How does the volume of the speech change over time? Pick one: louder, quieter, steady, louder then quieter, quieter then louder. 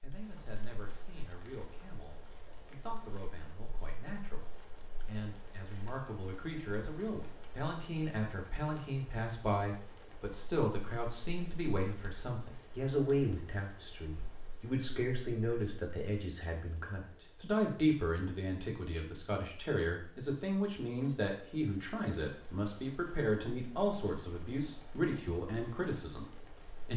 louder.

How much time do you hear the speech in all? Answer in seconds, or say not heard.
27 s.